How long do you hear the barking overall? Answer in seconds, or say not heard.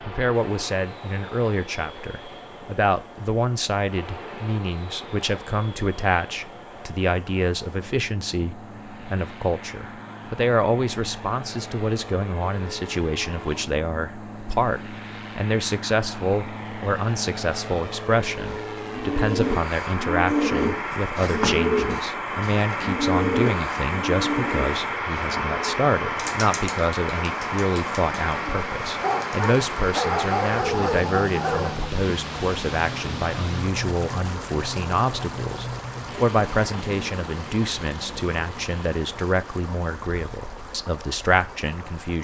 3 s.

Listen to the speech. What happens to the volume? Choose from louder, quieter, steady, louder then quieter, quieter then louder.
steady.